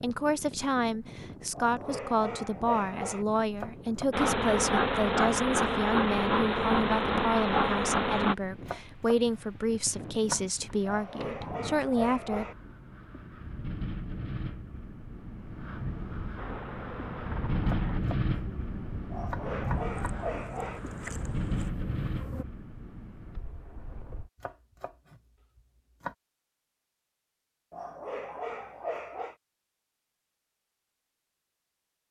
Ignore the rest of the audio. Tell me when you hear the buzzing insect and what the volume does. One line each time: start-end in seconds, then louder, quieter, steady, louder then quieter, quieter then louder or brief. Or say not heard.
4.1-8.3 steady
16.4-22.4 quieter then louder.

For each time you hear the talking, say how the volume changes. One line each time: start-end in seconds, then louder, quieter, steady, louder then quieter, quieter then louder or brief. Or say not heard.
0.0-12.4 steady.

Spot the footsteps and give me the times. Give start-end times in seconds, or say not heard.
not heard.